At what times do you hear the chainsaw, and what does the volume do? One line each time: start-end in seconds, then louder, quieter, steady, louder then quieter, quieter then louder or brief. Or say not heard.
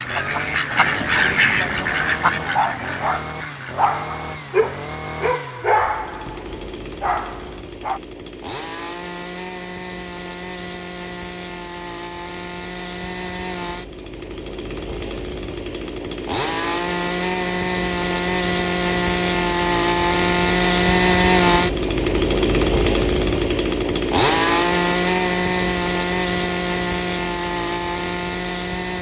0.0-28.9 louder.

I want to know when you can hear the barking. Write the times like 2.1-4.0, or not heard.
2.5-8.0.